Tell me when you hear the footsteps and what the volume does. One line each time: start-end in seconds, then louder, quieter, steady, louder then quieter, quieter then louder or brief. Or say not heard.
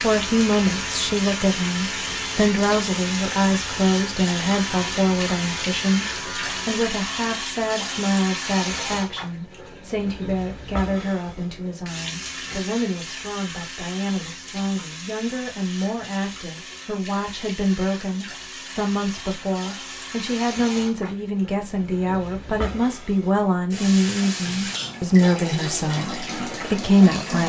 not heard.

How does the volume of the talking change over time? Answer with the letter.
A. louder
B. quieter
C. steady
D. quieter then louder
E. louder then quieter
D.